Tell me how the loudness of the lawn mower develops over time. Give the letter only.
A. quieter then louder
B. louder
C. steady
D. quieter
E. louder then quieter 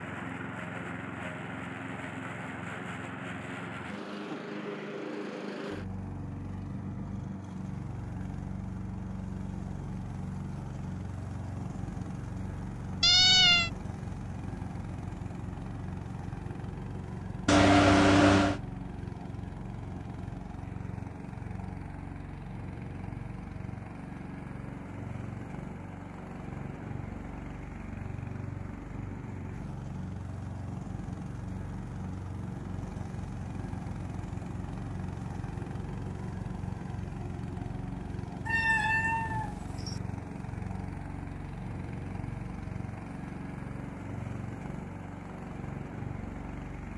C.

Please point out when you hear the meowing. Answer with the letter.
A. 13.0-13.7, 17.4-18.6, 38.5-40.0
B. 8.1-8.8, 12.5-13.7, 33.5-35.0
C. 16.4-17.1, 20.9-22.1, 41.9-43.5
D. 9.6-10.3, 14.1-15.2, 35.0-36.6
A.